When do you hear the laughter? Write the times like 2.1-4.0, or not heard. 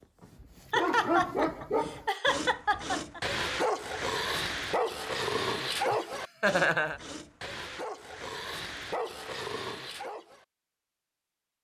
0.7-3.2, 5.9-7.0.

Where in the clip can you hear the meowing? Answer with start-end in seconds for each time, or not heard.
not heard.